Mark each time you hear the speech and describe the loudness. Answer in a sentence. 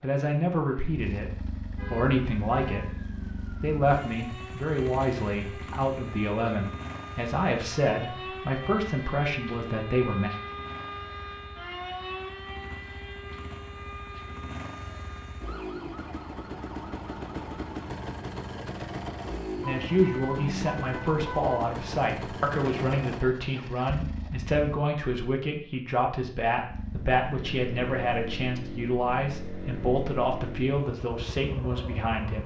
The speech can be heard briefly from 0.0 to 3.0 s; from 3.6 to 10.3 s, at a steady volume; and from 19.6 to 32.4 s, at a steady volume.